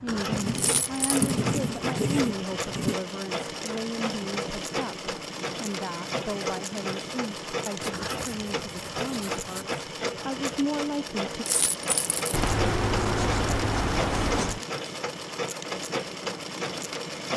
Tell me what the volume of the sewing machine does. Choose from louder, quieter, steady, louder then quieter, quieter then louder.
steady.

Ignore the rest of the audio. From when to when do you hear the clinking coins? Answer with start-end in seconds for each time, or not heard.
0.6-1.4, 11.4-12.5.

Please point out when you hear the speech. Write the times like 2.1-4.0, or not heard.
0.0-11.4.